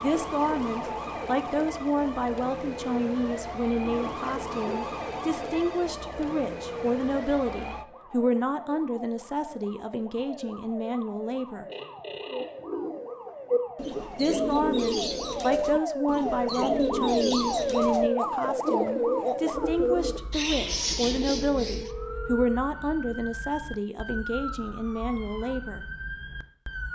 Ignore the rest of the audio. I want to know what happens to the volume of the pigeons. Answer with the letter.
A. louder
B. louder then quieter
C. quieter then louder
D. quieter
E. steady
E.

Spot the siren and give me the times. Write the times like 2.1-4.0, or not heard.
0.0-26.9.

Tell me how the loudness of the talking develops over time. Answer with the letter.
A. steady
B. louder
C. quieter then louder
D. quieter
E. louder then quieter
A.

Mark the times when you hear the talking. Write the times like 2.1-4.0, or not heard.
0.0-11.7, 14.2-25.8.